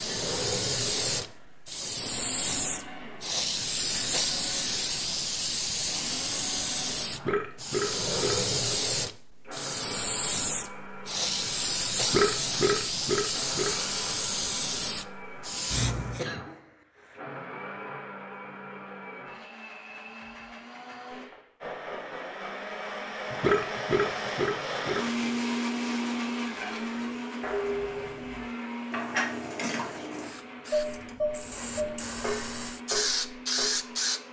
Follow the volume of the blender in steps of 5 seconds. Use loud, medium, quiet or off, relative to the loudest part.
medium, medium, medium, medium, loud, loud, medium.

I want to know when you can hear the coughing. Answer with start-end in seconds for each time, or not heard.
16.1-17.2.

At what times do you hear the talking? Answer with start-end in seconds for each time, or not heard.
not heard.